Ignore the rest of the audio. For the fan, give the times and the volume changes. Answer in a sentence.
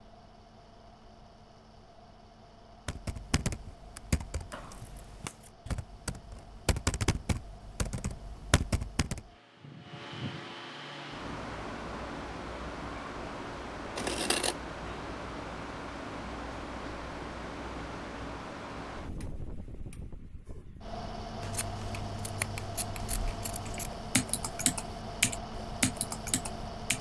You can hear the fan from 0.0 to 26.9 s, getting louder.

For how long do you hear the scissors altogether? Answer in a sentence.
The scissors can be heard for 4 seconds in total.